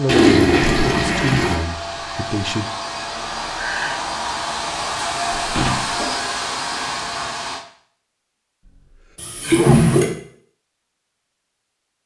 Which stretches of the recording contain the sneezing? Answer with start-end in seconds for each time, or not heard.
3.5-4.0, 9.3-10.1.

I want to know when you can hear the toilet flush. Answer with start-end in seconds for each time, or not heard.
0.1-1.6, 5.3-6.2, 9.2-10.1.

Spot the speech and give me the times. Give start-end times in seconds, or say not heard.
0.0-2.6.